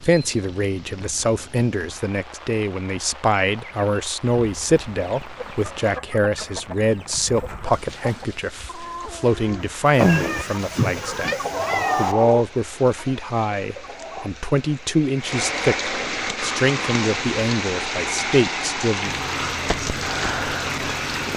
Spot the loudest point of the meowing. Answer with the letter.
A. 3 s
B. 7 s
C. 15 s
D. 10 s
D.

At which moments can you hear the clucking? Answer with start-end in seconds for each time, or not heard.
3.5-14.3.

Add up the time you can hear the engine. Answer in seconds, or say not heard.
2 s.